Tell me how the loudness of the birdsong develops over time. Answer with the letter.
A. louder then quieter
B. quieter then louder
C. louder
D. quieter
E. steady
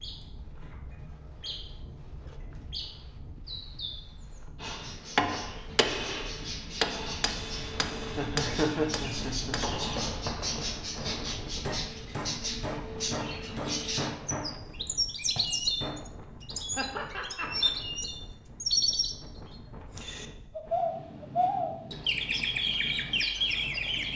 C.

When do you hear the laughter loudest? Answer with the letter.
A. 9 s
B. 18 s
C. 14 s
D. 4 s
A.